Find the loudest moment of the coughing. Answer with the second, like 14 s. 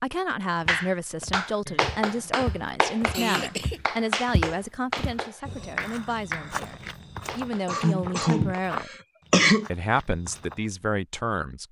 9 s.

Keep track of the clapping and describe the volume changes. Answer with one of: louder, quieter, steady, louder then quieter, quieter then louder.
quieter.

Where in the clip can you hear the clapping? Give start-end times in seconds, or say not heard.
0.7-8.7.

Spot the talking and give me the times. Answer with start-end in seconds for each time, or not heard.
0.0-8.9, 9.7-11.6.